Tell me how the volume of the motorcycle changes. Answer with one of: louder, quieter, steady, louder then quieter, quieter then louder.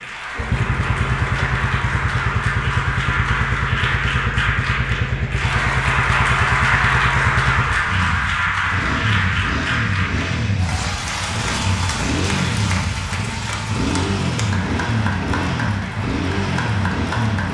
steady.